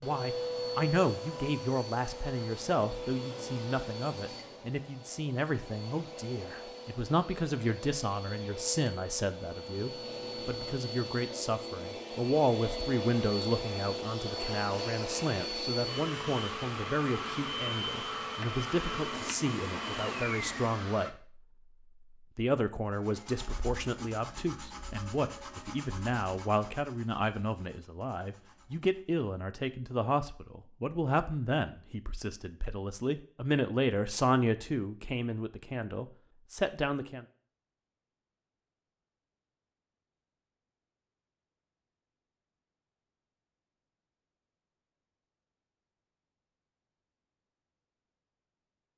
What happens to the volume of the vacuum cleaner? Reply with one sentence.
The loudness of the vacuum cleaner goes down, then up.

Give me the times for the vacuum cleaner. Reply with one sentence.
You can hear the vacuum cleaner from 0.0 to 21.1 s.